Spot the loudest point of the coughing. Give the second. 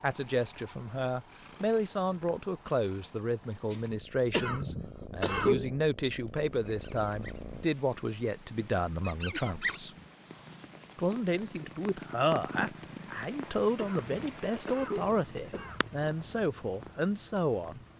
5 s.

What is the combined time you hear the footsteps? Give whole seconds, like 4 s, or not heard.
not heard.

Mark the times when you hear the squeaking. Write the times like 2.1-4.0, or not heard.
6.7-7.5, 9.1-9.8.